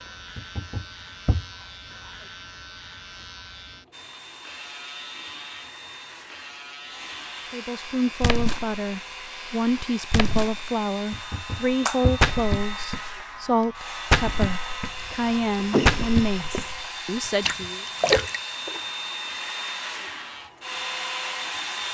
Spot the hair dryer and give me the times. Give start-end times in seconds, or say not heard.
3.9-21.8.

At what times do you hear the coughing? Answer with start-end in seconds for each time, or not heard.
15.6-16.6.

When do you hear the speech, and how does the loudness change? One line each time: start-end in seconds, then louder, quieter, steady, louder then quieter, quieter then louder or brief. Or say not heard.
7.5-17.9 steady.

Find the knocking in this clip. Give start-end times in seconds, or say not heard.
0.3-1.4, 11.1-12.2, 17.2-18.4.